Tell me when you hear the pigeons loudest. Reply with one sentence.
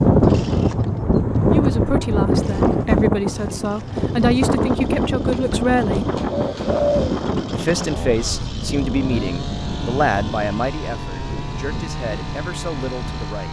The volume of the pigeons peaks at 7 seconds.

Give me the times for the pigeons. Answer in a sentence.
You can hear the pigeons from 5.2 to 7.2 s.